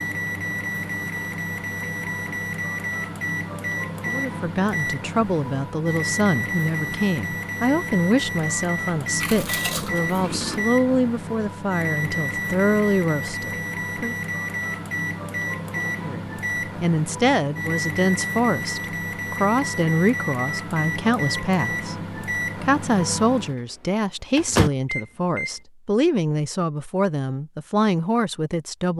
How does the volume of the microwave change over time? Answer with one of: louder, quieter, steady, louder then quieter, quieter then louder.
steady.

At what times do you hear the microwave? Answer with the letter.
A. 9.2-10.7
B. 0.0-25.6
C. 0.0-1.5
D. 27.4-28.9
B.